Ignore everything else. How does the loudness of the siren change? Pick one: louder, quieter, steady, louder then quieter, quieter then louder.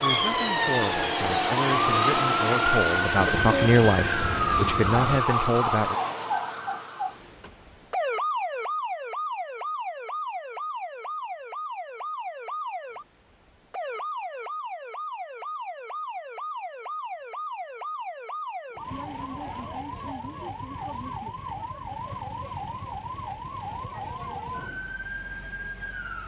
quieter.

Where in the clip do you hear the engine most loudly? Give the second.
2 s.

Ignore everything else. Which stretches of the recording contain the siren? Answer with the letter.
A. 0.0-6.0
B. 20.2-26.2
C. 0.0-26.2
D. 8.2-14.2
C.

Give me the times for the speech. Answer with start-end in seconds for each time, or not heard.
0.0-6.0.